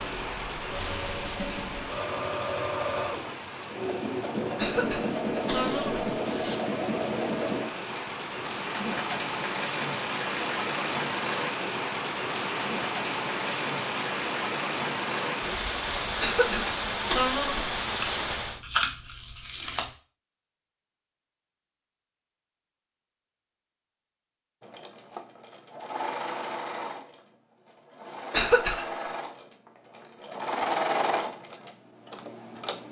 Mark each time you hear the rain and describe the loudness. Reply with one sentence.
You can hear the rain from 0.0 to 18.6 s, getting louder.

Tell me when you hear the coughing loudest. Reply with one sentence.
The loudest moment of the coughing is at 29 seconds.